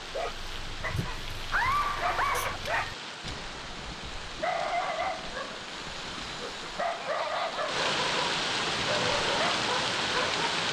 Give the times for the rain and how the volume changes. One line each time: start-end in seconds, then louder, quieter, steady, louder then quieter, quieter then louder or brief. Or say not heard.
0.0-10.6 louder.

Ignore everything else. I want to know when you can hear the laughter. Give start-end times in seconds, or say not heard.
1.5-2.6, 6.8-7.7.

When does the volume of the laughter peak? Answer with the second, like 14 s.
2 s.